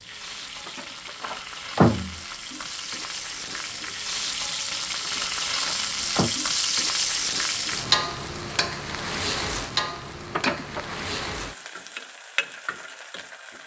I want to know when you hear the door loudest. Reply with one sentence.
The volume of the door peaks at 2 seconds.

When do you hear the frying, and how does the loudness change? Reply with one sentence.
The frying can be heard from 0.0 to 13.6 s, getting louder then quieter.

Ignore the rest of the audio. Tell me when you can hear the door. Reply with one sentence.
The door can be heard from 0.7 to 2.1 s, from 5.0 to 6.3 s and from 10.3 to 10.9 s.